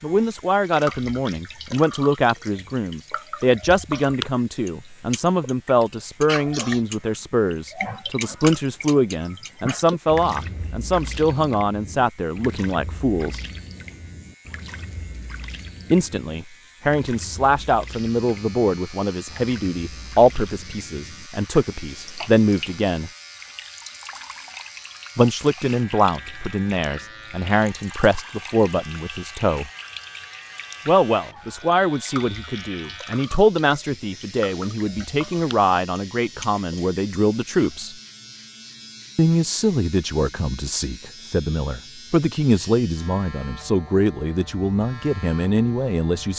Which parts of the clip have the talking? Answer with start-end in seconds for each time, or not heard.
0.0-13.4, 15.9-23.1, 25.1-29.7, 30.9-38.0, 39.1-46.3.